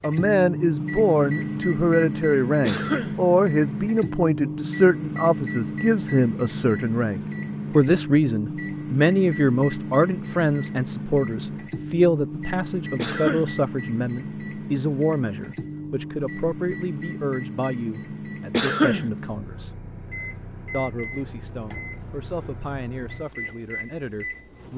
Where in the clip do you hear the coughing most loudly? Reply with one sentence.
The volume of the coughing peaks at 19 seconds.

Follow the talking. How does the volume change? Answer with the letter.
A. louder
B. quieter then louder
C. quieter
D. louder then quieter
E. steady
C.